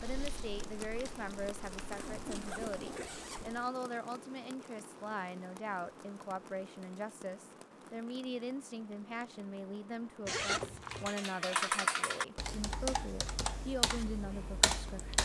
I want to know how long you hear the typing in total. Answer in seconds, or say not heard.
7 s.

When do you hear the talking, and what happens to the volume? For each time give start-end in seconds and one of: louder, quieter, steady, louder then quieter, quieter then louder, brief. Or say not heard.
0.0-15.2 steady.